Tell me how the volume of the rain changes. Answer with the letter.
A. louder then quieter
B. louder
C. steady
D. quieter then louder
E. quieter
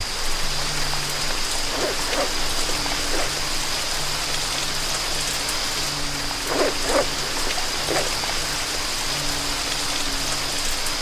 C.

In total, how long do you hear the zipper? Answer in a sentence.
You can hear the zipper for 3 seconds altogether.